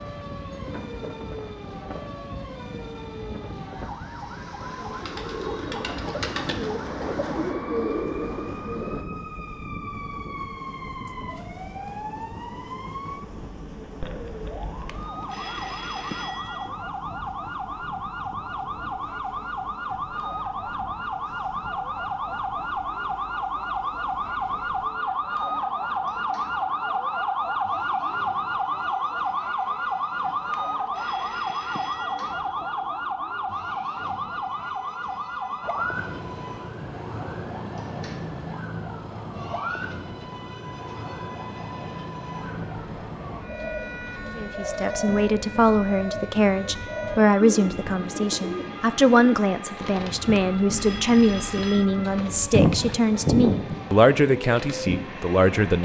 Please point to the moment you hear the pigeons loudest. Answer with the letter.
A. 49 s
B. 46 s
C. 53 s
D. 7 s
C.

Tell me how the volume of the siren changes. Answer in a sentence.
The loudness of the siren goes up, then down.